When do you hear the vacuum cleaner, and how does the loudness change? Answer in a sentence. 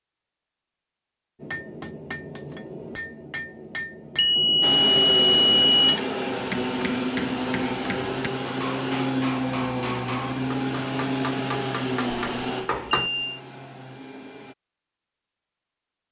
You can hear the vacuum cleaner from 4.6 to 14.6 s, getting quieter.